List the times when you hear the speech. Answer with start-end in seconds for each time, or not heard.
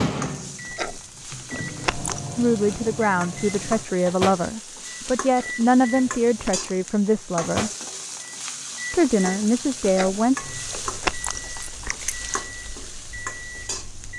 2.4-7.7, 8.9-10.3.